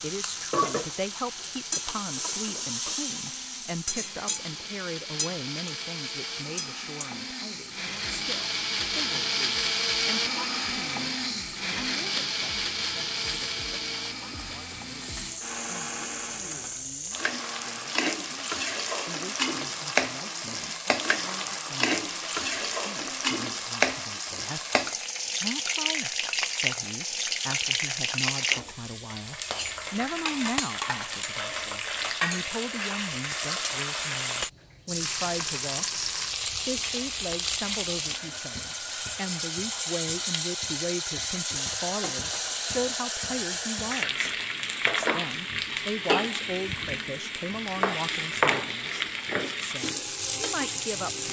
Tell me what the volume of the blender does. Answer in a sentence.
The volume of the blender goes up, then down.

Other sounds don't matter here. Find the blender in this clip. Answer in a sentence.
You can hear the blender from 0.0 to 22.4 s.